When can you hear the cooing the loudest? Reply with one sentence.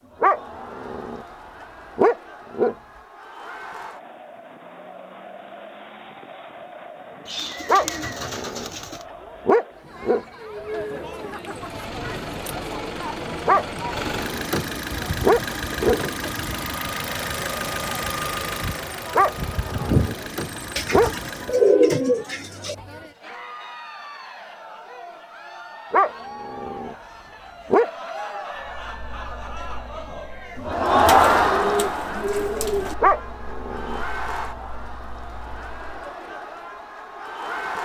The loudest moment of the cooing is at 22 seconds.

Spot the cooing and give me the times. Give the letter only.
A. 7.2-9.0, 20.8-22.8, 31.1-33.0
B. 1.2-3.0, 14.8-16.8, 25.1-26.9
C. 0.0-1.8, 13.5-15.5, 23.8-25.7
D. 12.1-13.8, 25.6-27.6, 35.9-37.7
A.